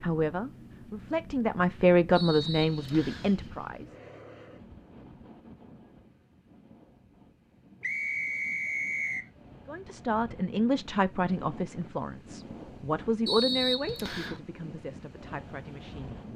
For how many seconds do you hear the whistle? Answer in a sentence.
You can hear the whistle for 4 seconds altogether.